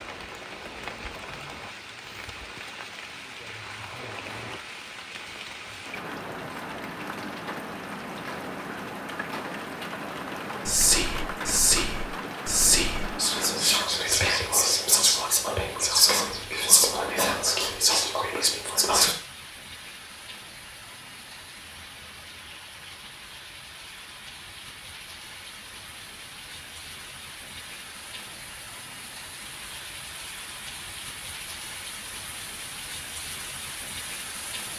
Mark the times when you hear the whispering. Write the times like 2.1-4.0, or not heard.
10.7-19.1.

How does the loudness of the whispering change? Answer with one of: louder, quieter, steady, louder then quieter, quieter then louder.
steady.